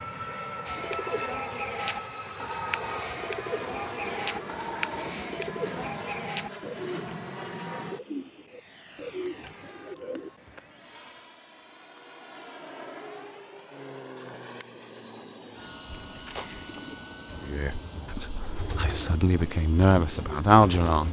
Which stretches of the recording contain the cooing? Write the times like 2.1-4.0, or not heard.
0.7-10.3, 15.8-21.0.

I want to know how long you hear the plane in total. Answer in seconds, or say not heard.
21 s.